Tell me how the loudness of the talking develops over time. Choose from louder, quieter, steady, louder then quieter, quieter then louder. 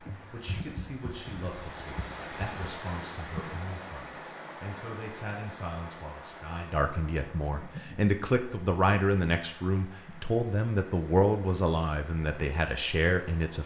louder.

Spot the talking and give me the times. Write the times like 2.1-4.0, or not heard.
0.1-13.6.